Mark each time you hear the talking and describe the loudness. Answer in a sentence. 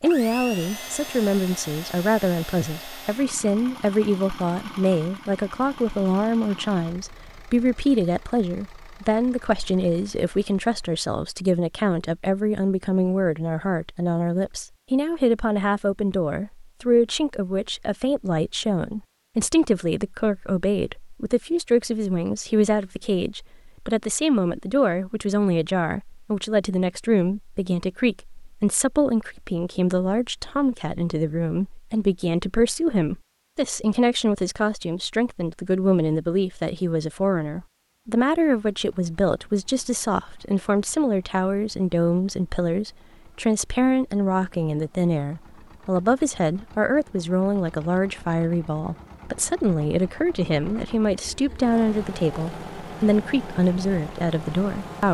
The talking can be heard from 0.0 to 55.1 s, at a steady volume.